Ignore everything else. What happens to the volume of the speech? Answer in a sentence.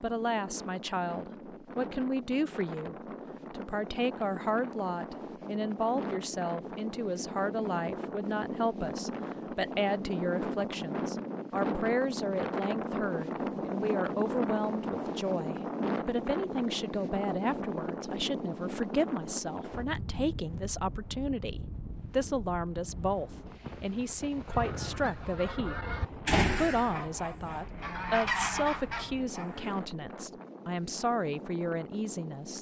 The loudness of the speech stays about the same.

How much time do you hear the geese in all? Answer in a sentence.
You can hear the geese for 5 seconds altogether.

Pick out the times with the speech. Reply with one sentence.
The speech can be heard from 0.0 to 32.5 s.